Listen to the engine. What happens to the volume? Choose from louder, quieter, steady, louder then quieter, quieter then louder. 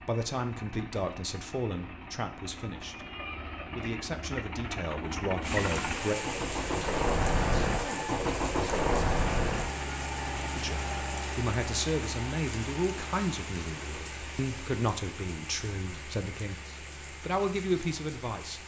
louder then quieter.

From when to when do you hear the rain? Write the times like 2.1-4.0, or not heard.
5.4-18.6.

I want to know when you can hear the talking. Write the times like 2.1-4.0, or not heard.
0.1-6.2, 10.6-18.6.